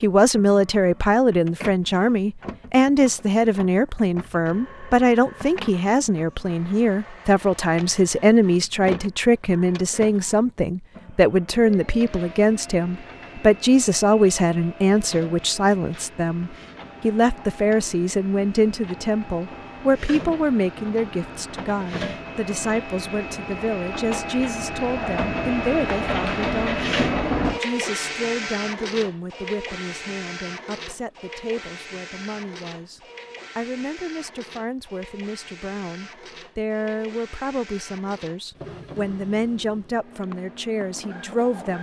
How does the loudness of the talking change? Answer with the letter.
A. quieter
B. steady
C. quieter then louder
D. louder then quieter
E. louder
A.